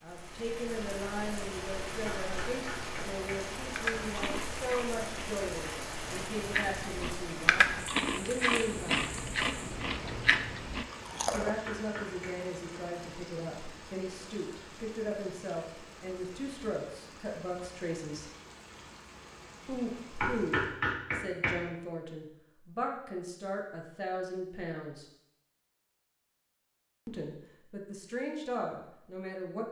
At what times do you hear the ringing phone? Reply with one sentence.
You can't hear the ringing phone here.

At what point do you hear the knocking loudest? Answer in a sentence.
The volume of the knocking peaks at 21 seconds.